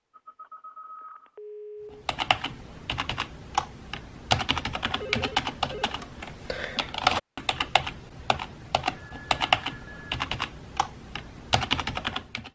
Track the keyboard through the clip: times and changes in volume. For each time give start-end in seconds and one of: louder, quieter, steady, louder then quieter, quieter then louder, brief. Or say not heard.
2.0-12.5 steady.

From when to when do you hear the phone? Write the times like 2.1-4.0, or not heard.
0.1-2.1, 5.0-6.1, 8.9-10.2.